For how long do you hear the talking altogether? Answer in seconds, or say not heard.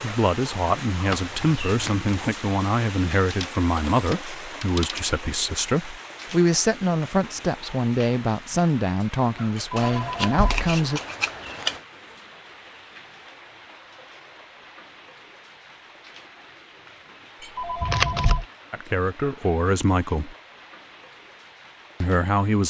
13 s.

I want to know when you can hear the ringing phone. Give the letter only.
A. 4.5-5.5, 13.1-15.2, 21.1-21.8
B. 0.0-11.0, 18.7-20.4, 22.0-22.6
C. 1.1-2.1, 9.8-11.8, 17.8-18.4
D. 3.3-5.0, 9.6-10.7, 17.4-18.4
D.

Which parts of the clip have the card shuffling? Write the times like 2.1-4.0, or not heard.
1.1-2.1, 9.8-11.8, 17.8-18.4.